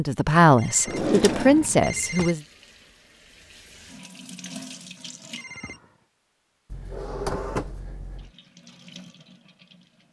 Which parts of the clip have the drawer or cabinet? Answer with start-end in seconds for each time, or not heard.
0.8-2.3, 6.7-8.3.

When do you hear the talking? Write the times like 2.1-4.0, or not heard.
0.0-2.4.